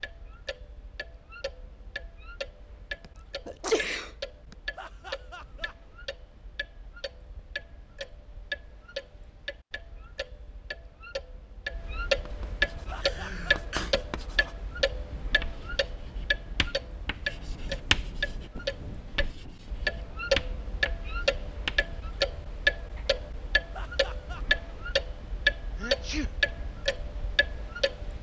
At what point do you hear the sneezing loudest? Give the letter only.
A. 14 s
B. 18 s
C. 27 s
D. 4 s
D.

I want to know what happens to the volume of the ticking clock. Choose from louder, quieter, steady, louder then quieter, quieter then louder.
louder.